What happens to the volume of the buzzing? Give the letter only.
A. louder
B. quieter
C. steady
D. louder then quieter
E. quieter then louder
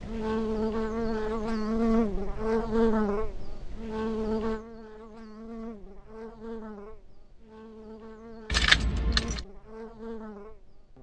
B.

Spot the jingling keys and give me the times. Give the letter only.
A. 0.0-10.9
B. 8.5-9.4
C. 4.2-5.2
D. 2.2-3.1
B.